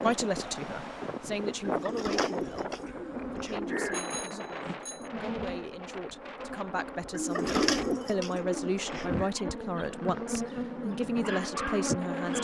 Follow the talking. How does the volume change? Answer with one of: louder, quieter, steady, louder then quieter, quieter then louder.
quieter then louder.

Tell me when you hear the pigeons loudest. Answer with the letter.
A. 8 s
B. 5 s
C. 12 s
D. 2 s
A.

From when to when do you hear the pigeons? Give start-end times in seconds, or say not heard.
1.6-4.2, 7.1-9.3.